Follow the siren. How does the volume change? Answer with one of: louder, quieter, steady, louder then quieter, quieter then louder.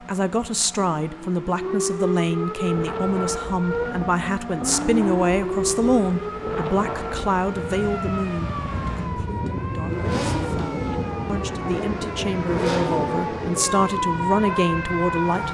quieter then louder.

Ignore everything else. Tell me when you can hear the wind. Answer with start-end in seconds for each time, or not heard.
2.6-15.2.